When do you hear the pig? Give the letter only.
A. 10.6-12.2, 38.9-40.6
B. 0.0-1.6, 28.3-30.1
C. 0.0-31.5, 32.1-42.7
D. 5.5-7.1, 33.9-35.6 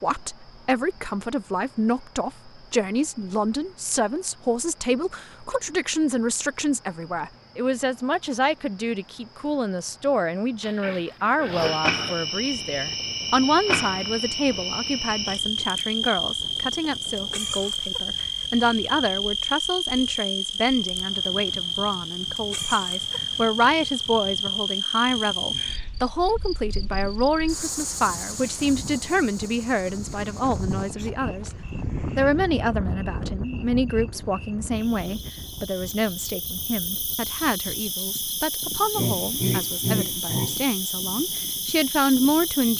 A.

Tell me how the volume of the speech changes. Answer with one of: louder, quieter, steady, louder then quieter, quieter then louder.
steady.